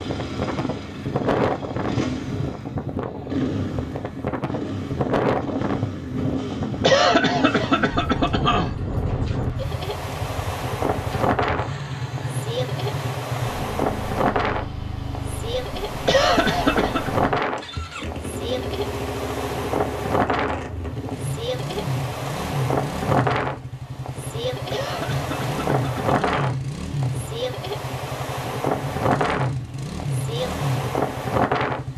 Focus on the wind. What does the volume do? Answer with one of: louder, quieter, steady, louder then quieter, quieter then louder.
steady.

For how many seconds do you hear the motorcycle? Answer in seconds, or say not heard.
32 s.